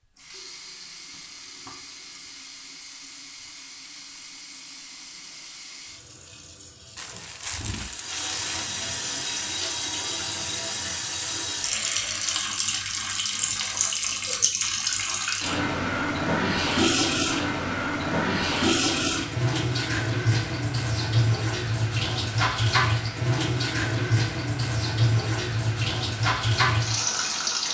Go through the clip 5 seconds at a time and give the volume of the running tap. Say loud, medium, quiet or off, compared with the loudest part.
quiet, medium, loud, loud, loud, loud.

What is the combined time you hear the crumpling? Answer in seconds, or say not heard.
2 s.